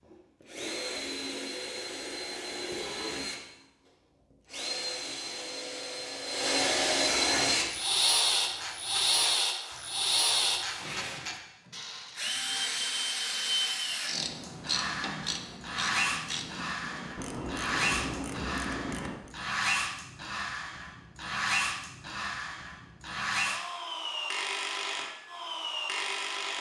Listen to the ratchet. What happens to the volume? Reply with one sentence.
The volume of the ratchet goes up.